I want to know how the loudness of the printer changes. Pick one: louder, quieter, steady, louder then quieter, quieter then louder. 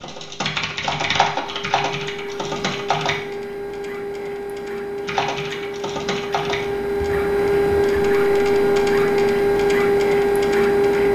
louder.